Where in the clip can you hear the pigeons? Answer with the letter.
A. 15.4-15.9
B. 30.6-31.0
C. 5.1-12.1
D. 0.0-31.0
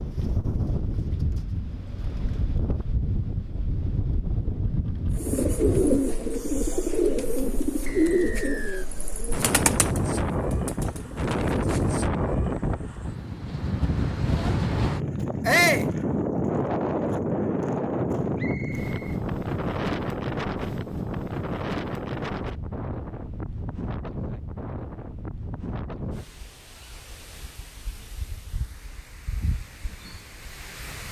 C.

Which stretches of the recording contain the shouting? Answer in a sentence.
You can hear the shouting from 15.4 to 15.9 s.